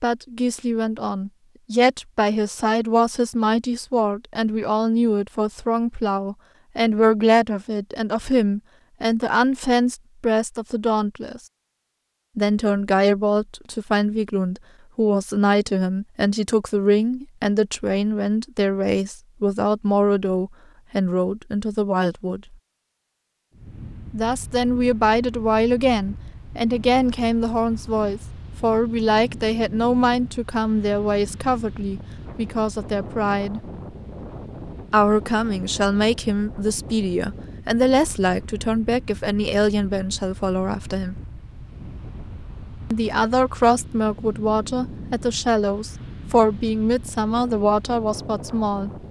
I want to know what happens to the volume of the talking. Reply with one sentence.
The loudness of the talking stays about the same.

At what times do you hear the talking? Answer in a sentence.
You can hear the talking from 0.0 to 11.4 s, from 12.3 to 22.6 s, from 24.1 to 33.6 s, from 34.9 to 41.1 s and from 42.9 to 48.9 s.